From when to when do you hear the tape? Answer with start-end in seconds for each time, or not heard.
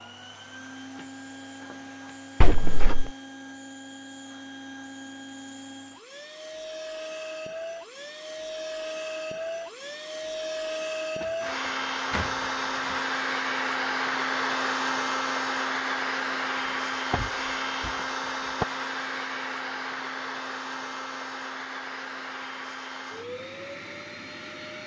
not heard.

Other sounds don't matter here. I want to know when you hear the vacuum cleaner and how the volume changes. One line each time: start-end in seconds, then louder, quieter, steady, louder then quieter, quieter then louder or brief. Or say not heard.
0.0-24.8 louder then quieter.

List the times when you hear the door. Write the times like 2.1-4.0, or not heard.
2.4-3.1, 11.2-12.9, 17.1-17.9.